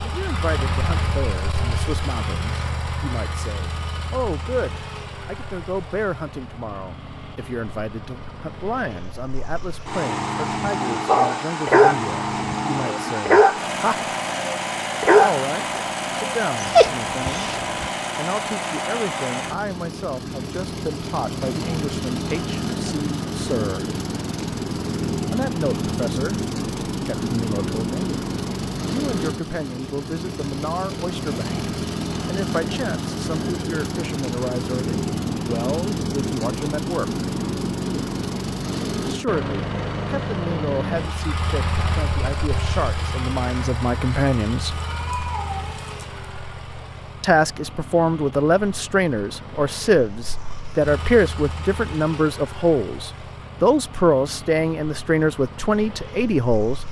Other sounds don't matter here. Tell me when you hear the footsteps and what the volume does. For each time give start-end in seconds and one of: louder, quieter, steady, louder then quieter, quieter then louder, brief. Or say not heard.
not heard.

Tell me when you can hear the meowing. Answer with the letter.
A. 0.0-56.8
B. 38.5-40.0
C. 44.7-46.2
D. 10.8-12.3
C.